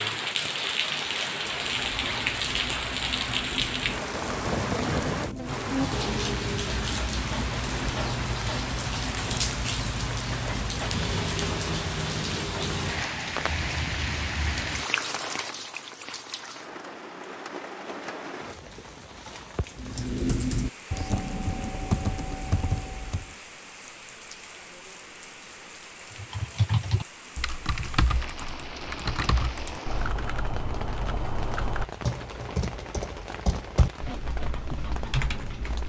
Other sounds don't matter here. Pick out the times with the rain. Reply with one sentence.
The rain can be heard from 0.0 to 35.8 s.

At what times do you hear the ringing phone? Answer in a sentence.
You can't hear the ringing phone here.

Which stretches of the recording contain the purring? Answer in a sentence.
The purring can't be heard in this clip.